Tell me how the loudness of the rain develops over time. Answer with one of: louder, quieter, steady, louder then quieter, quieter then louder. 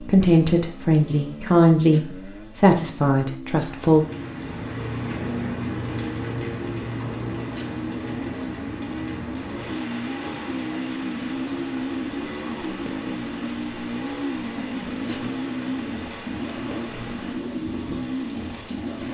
quieter.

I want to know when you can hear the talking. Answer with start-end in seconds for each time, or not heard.
0.0-4.0.